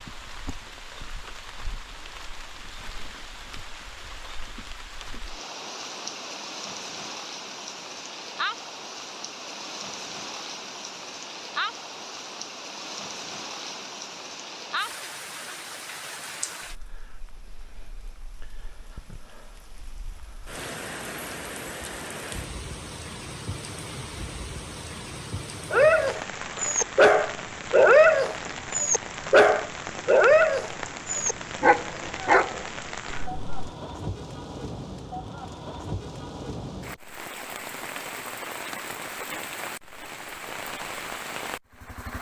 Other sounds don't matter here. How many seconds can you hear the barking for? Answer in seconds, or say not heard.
8 s.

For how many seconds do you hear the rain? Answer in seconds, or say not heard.
42 s.